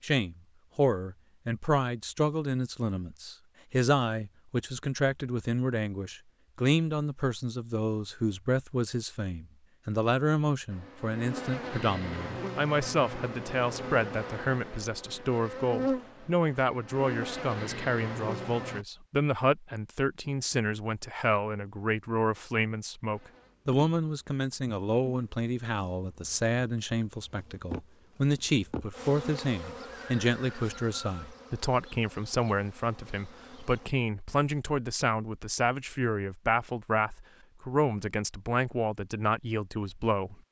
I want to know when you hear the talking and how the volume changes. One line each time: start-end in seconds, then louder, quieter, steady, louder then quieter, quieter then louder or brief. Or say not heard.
0.0-40.4 steady.